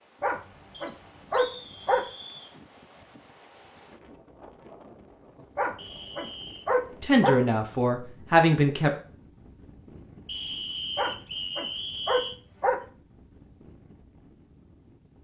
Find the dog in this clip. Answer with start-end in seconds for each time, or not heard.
0.2-2.0, 5.5-7.4, 10.9-12.8.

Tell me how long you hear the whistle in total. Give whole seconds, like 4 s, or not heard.
5 s.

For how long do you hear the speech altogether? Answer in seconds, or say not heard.
2 s.